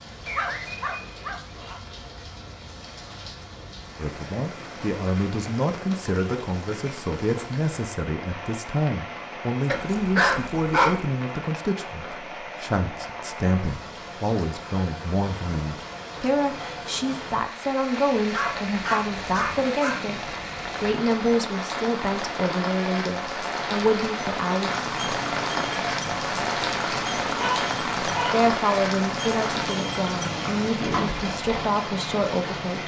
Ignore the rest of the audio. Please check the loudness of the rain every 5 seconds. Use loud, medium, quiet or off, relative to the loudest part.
quiet, medium, medium, medium, loud, loud, loud.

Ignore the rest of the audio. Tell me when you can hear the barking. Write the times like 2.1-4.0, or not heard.
0.2-1.8, 9.7-11.0, 18.2-20.0, 27.4-28.4.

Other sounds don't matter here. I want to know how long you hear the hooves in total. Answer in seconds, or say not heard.
7 s.